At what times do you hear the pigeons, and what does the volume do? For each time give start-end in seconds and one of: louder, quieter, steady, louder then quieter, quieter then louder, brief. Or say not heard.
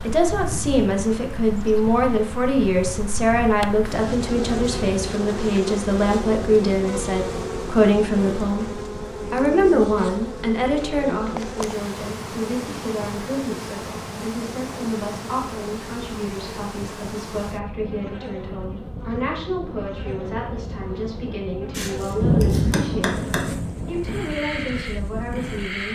not heard.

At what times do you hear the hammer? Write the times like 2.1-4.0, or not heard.
21.7-23.6.